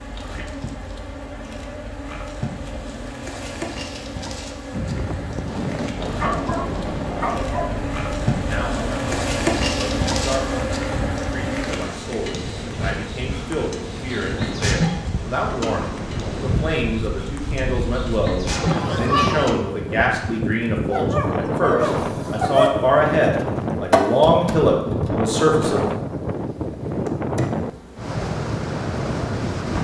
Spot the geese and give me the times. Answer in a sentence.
You can hear the geese from 18.6 to 19.5 s.